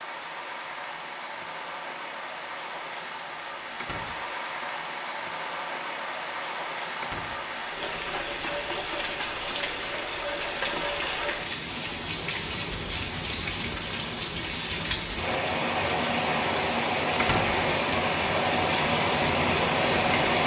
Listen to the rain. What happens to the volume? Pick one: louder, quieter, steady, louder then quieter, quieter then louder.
louder.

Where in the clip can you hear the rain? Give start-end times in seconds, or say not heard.
0.0-20.4.